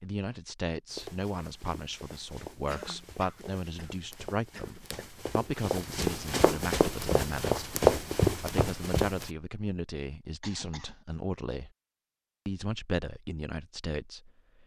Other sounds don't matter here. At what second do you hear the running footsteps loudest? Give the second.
8 s.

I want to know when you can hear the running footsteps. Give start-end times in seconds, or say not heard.
0.9-9.3.